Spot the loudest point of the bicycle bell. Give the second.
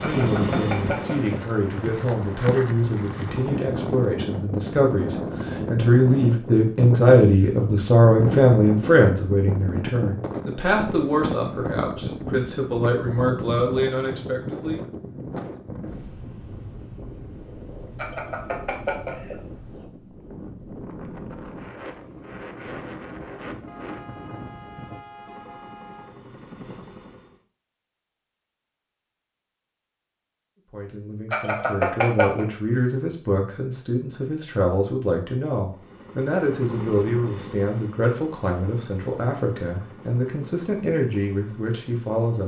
32 s.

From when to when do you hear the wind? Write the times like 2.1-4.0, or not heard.
0.2-25.1.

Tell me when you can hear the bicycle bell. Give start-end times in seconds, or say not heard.
0.0-1.6, 17.9-19.4, 31.3-32.5.